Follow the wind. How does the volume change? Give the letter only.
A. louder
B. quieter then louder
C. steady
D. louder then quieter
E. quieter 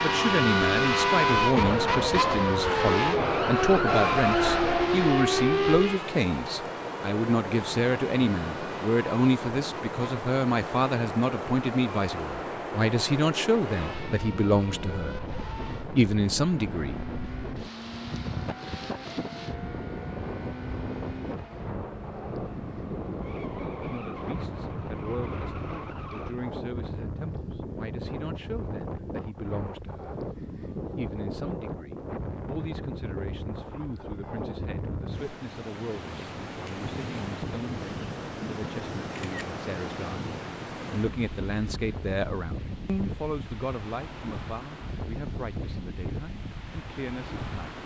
C.